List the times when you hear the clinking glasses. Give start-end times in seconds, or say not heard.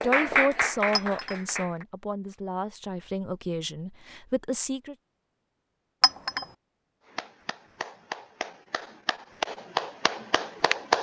0.9-1.4, 6.0-6.5.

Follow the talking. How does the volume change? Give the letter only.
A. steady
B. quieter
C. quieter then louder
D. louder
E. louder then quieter
B.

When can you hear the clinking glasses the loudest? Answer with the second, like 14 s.
6 s.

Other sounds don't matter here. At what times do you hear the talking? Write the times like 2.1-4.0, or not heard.
0.0-5.0.